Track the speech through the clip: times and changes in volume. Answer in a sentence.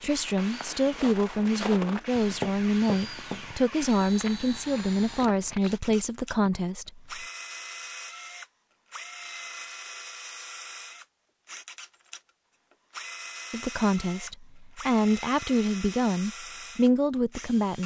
You can hear the speech from 0.0 to 7.2 s, at a steady volume; and from 13.5 to 17.8 s, getting louder.